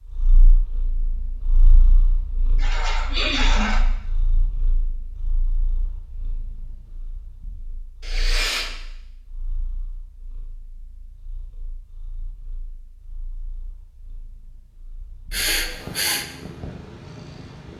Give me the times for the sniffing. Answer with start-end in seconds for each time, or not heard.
2.5-3.9, 8.0-8.7, 15.3-16.2.